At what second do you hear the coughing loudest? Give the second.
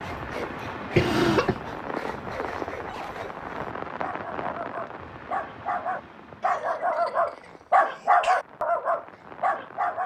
1 s.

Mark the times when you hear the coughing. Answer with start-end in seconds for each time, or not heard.
0.9-1.6, 6.4-8.4.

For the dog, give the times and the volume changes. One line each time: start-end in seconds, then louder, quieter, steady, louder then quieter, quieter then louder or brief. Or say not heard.
0.0-10.0 louder.